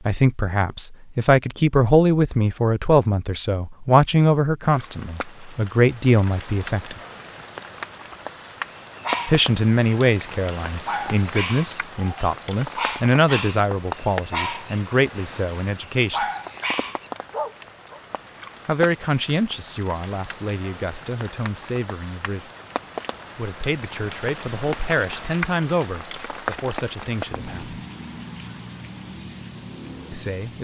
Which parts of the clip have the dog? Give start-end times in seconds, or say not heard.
8.9-18.0.